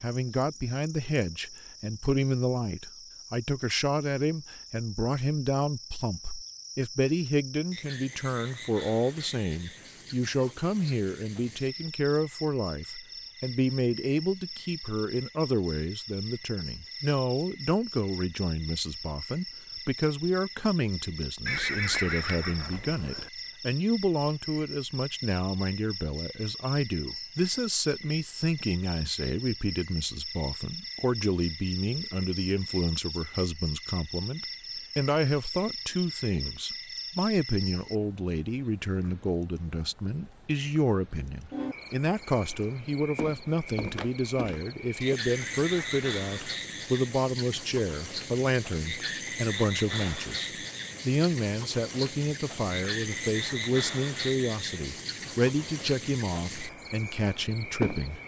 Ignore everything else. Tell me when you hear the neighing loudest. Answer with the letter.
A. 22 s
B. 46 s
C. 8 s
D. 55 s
A.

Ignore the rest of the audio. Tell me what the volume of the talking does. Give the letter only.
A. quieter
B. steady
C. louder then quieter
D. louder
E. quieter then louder
B.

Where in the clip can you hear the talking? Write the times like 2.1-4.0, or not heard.
0.0-58.2.